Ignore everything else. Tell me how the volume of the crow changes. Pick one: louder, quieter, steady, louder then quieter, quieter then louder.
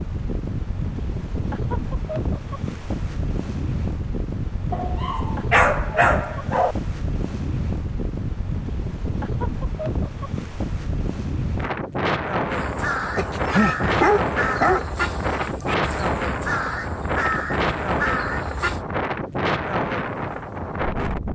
quieter then louder.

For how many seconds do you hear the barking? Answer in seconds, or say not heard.
4 s.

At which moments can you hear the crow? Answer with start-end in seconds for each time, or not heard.
12.5-18.9.